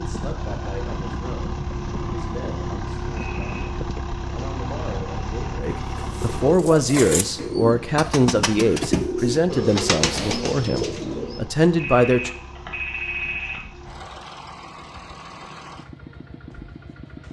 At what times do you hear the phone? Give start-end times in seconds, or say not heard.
3.1-3.8, 11.8-13.7.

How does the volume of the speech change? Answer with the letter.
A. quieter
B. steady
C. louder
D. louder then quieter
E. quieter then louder
C.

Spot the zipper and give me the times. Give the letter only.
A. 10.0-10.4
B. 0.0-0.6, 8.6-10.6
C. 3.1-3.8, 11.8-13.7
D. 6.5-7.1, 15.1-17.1
A.